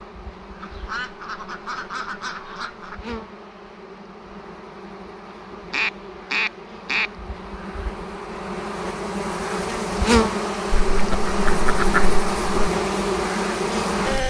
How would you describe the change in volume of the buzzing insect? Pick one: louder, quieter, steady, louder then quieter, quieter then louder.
louder.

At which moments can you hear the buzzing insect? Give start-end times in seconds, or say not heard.
0.0-14.2.